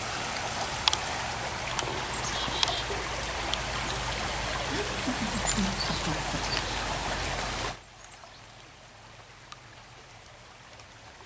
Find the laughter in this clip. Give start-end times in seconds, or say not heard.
4.7-6.5.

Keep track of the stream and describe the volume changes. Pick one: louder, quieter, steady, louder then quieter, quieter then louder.
quieter.